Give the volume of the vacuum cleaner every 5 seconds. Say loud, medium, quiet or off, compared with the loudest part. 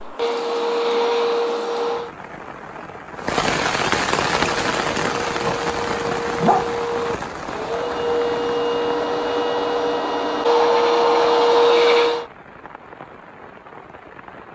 medium, medium, loud.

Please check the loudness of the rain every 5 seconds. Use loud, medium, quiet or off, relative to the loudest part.
loud, loud, quiet.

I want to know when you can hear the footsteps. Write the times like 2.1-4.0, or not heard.
not heard.